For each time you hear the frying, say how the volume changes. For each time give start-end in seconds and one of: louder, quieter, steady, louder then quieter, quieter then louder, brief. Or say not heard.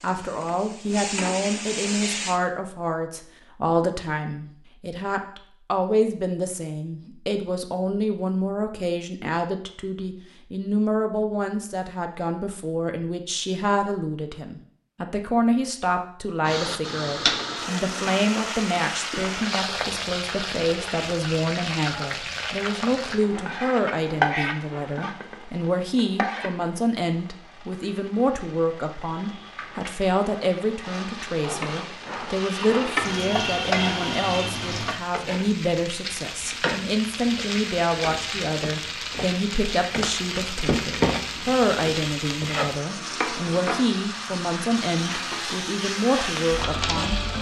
0.0-2.4 brief
16.4-47.3 steady.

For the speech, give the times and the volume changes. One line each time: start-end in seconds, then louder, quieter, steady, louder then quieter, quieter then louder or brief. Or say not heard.
0.0-47.1 steady.